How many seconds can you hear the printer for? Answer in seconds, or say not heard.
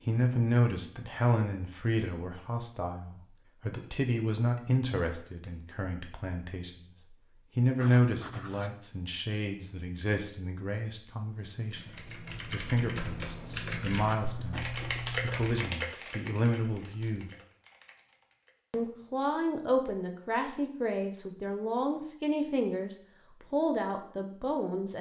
not heard.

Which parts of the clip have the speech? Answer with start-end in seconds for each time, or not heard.
0.1-17.3, 18.7-24.9.